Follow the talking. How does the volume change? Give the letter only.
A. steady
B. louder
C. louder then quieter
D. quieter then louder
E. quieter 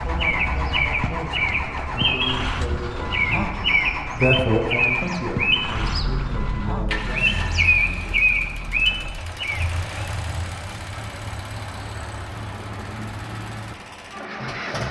C.